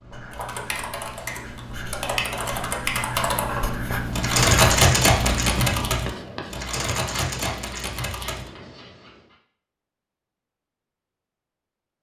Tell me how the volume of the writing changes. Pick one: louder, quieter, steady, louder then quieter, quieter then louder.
louder then quieter.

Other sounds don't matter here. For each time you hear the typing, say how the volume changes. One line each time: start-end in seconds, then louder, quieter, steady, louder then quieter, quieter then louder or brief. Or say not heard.
0.3-8.5 louder then quieter.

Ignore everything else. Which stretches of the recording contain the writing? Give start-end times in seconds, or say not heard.
0.0-9.3.